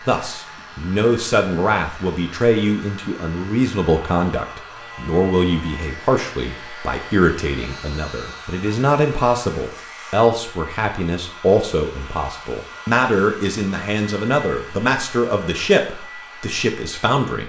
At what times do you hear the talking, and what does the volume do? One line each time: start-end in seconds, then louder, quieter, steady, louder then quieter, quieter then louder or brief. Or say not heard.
0.1-17.4 steady.